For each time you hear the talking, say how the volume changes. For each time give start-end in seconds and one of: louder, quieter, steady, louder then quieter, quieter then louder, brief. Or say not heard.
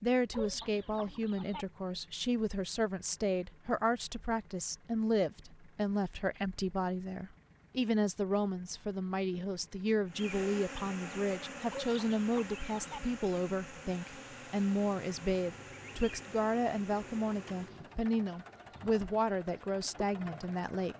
0.0-20.9 steady.